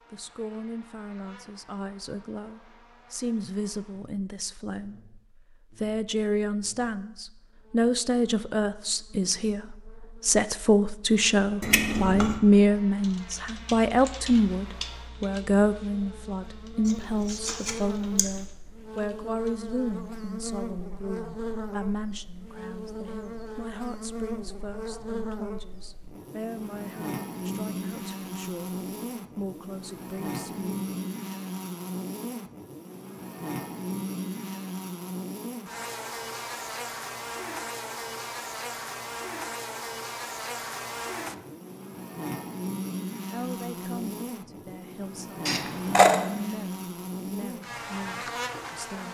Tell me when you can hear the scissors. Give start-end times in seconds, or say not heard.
11.6-12.4, 16.9-18.3, 45.5-46.2.